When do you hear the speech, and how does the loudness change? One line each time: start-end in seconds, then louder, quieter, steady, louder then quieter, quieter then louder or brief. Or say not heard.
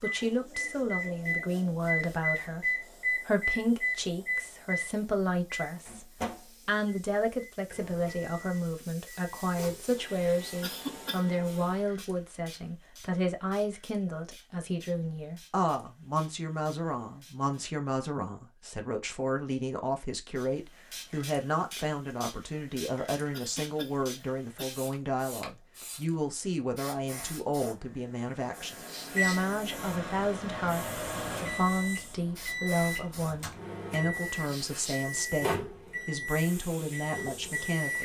0.0-37.9 steady.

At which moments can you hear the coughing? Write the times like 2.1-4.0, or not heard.
10.6-11.3, 23.3-24.6.